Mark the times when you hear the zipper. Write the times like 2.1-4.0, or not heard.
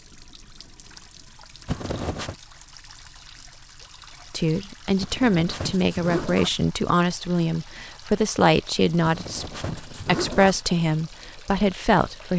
1.6-2.4, 5.0-6.6, 9.0-10.7.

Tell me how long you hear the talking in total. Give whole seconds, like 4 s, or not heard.
8 s.